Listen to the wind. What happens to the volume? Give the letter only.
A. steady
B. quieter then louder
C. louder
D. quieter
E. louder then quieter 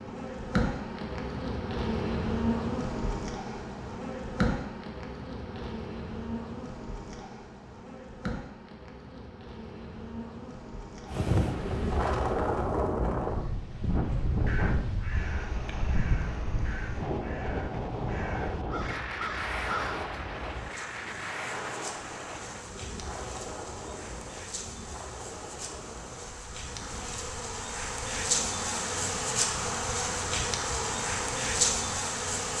D.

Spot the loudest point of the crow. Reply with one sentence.
The loudest moment of the crow is at 20 seconds.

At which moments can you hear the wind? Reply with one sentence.
The wind can be heard from 11.1 to 32.5 s.